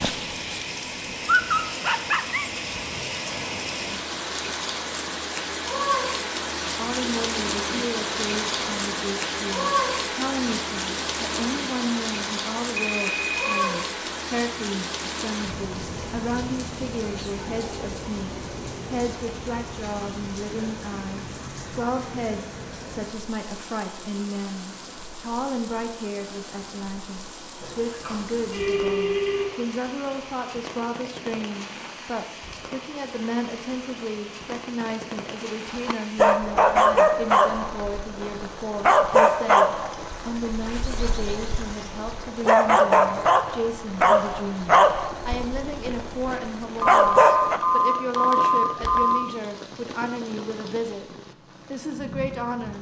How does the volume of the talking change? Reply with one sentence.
The volume of the talking stays about the same.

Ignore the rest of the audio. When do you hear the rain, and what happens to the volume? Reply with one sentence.
You can hear the rain from 0.0 to 52.7 s, getting quieter.